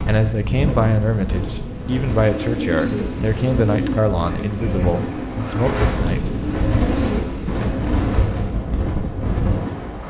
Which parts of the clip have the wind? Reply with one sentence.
The wind can be heard from 0.0 to 10.0 s.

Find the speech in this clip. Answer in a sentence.
The speech can be heard from 0.1 to 6.4 s.